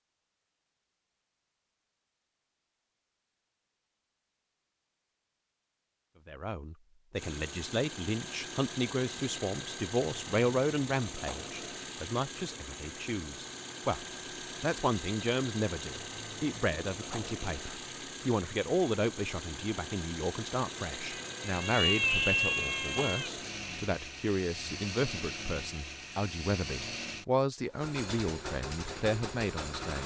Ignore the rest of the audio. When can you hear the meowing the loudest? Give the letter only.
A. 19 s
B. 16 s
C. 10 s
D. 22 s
D.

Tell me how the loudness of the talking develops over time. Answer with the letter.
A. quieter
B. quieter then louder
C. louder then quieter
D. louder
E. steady
E.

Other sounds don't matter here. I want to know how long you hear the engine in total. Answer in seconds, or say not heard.
23 s.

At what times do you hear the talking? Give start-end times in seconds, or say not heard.
6.2-30.0.